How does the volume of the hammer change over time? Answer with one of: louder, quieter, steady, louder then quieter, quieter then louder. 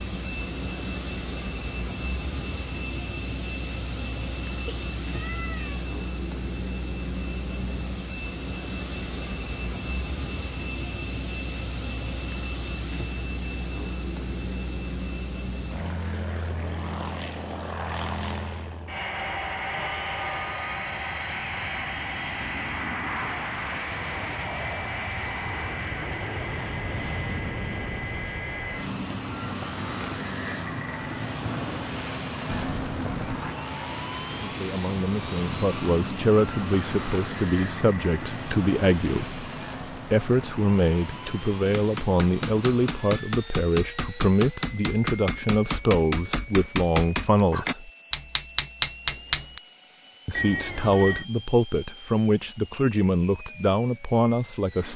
louder.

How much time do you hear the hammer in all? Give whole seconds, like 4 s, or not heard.
8 s.